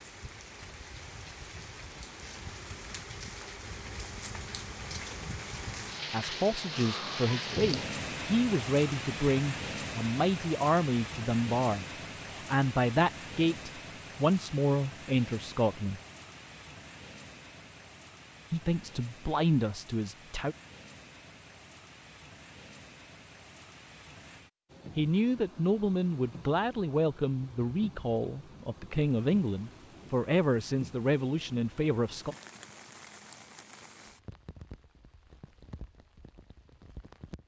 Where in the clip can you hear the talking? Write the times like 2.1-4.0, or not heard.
6.1-16.0, 18.5-20.6, 24.9-32.4.